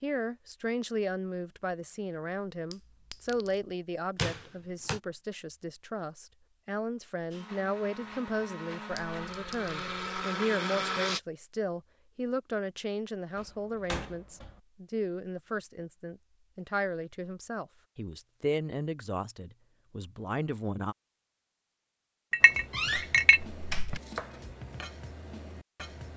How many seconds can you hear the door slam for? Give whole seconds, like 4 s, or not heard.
3 s.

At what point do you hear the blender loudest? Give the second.
11 s.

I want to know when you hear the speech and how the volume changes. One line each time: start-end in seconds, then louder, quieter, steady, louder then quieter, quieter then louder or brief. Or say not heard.
0.0-20.9 steady.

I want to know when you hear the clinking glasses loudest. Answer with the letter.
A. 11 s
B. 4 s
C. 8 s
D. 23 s
D.